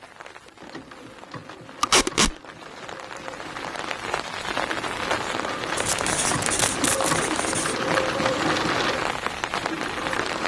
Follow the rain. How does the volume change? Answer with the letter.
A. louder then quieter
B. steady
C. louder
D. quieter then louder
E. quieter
C.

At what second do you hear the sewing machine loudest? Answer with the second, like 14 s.
8 s.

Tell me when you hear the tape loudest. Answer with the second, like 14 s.
2 s.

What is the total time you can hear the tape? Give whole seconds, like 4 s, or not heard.
2 s.